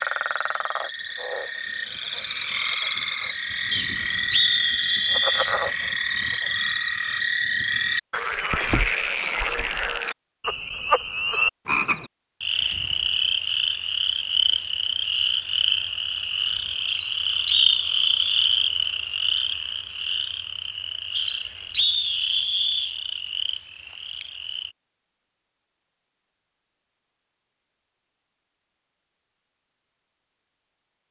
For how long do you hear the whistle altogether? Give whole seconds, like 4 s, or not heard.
5 s.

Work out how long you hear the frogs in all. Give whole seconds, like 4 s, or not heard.
25 s.